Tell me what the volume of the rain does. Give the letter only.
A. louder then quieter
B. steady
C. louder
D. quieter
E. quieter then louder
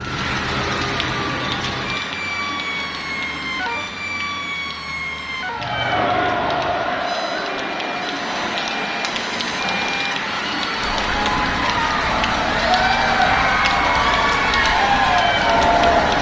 E.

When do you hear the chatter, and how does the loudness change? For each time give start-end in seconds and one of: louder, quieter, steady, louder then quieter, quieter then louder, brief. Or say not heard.
5.6-16.1 quieter then louder.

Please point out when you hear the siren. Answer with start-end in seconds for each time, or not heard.
0.0-16.1.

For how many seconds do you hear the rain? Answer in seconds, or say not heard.
16 s.